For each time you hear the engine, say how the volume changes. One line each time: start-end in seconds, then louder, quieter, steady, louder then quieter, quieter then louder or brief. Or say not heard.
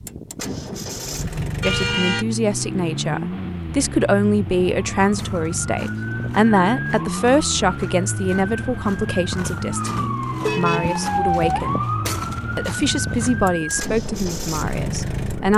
0.0-15.5 steady.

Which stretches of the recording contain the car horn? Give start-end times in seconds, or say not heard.
1.6-2.2, 10.4-11.0.